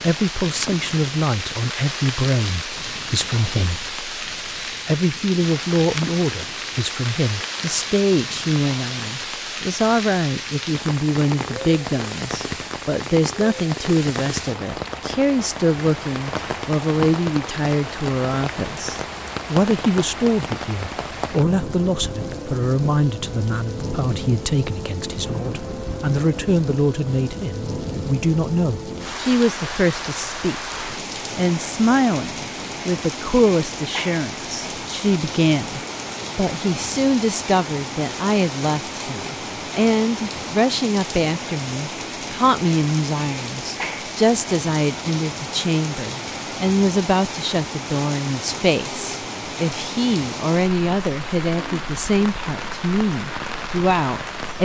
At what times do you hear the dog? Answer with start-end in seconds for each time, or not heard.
not heard.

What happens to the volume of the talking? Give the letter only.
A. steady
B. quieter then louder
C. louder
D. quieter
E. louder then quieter
A.